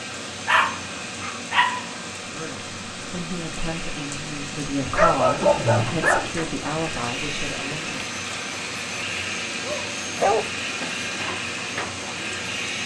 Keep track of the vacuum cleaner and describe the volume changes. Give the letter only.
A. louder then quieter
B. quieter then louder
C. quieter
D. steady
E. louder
E.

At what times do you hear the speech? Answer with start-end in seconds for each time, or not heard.
2.2-8.1.